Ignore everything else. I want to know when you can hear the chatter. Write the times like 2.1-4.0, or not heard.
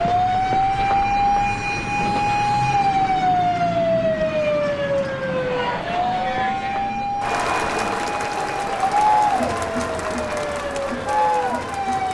5.2-12.0.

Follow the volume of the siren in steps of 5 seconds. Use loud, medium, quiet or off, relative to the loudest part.
loud, medium, medium.